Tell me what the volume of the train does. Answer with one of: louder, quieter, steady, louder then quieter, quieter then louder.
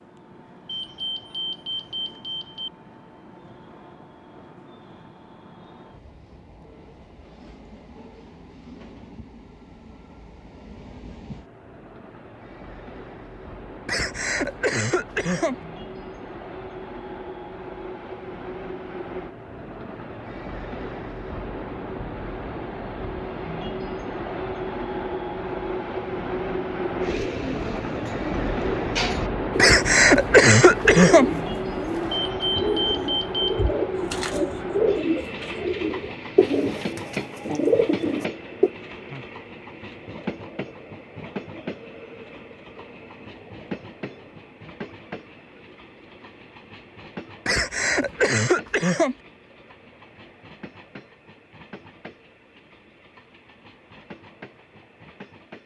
louder then quieter.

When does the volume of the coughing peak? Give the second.
31 s.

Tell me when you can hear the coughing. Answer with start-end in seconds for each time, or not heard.
13.8-15.6, 29.6-31.3, 47.5-49.1.